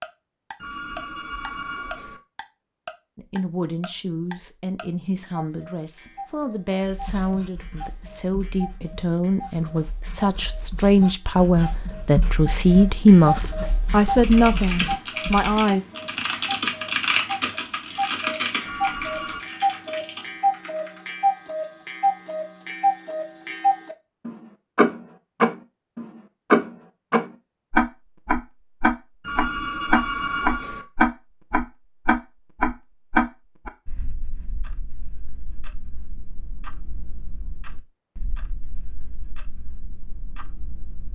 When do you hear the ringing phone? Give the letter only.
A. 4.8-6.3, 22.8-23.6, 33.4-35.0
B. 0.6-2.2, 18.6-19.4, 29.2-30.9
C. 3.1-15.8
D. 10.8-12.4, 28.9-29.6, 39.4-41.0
B.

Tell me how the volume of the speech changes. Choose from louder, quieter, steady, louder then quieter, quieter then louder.
louder.